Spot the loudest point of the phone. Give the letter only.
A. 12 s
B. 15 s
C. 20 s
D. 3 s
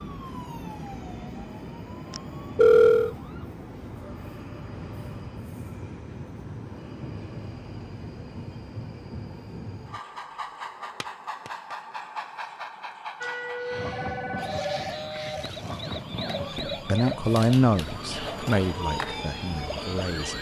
D.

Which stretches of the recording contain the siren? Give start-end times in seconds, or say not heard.
0.0-3.5, 13.2-20.3.